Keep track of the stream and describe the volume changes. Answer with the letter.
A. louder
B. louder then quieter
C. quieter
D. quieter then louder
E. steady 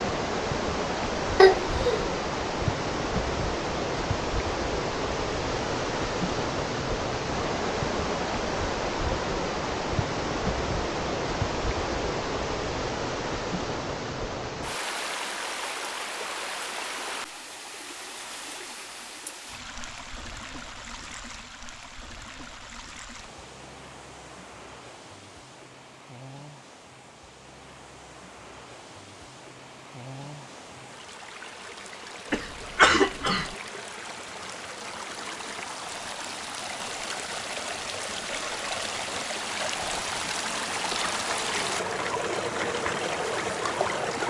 D.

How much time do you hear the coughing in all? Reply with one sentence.
The coughing can be heard for 2 seconds in total.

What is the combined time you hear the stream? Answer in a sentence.
The stream can be heard for 44 seconds in total.